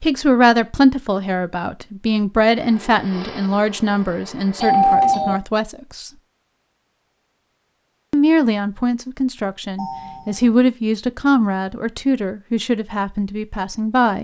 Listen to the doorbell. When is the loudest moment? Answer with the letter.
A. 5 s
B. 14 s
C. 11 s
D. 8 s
A.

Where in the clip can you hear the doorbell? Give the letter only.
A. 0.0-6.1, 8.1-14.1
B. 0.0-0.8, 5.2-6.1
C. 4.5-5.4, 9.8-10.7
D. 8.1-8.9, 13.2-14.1
C.